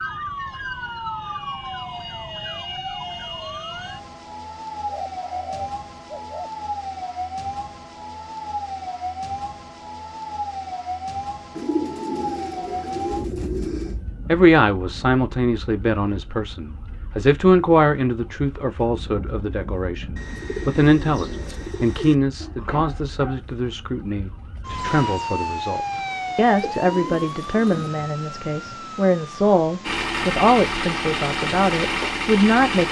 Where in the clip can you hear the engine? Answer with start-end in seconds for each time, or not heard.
29.8-32.8.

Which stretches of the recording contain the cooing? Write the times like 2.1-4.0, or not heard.
4.8-6.5, 11.6-13.9, 20.1-22.1, 26.4-27.9.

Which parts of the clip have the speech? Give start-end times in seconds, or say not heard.
14.2-32.8.